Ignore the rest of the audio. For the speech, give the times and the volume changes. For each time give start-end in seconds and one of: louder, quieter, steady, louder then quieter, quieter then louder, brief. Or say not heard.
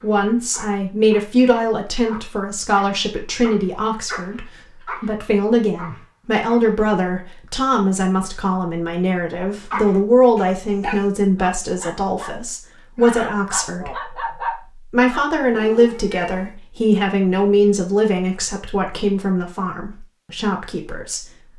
0.0-14.2 steady
14.9-21.2 quieter.